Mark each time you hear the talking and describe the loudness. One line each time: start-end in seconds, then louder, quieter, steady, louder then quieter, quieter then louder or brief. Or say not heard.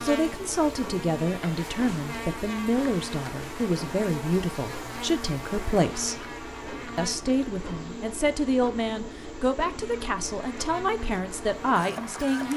0.0-6.2 steady
7.0-12.5 steady.